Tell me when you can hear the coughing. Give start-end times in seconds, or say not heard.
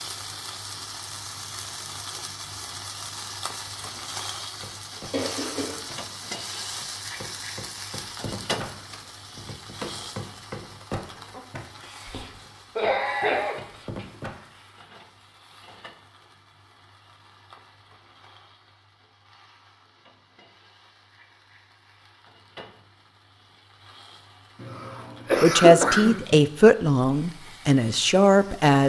5.1-5.8, 12.1-14.1, 24.6-26.4.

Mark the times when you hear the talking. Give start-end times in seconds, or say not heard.
25.4-28.8.